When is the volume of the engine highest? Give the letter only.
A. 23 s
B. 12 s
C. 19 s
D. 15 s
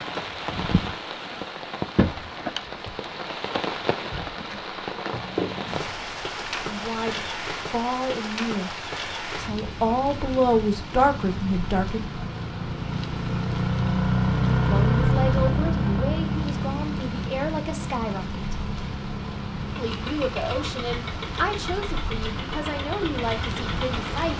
D.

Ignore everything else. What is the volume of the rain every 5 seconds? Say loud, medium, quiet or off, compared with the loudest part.
loud, loud, medium, medium, loud.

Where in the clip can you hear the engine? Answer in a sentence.
You can hear the engine from 10.9 to 24.3 s.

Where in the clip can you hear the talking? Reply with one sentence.
You can hear the talking from 6.6 to 12.1 s, from 14.6 to 18.6 s and from 19.8 to 24.3 s.